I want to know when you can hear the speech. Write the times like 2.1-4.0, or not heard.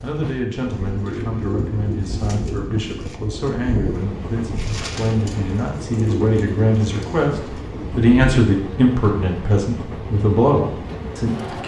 0.0-11.6.